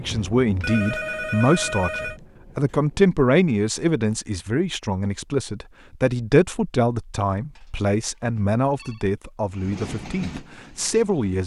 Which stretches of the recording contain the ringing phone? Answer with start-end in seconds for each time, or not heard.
0.6-2.2, 7.5-9.1.